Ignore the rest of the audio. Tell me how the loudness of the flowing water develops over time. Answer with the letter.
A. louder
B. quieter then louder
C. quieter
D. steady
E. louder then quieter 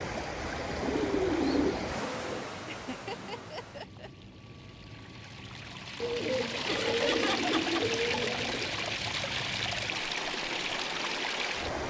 B.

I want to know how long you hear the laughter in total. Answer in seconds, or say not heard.
3 s.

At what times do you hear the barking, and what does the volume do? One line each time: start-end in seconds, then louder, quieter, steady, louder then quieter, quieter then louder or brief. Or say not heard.
not heard.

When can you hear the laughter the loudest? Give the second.
7 s.